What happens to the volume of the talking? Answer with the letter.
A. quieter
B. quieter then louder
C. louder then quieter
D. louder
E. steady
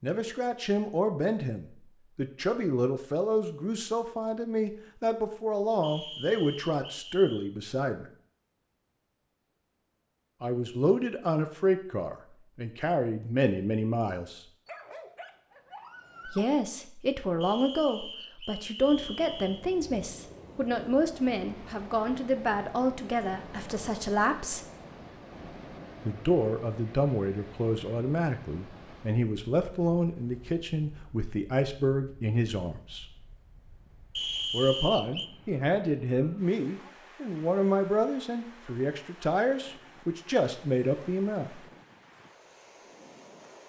E.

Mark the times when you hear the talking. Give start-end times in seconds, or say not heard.
0.0-8.1, 10.4-14.4, 16.2-24.6, 26.0-33.1, 34.5-41.6.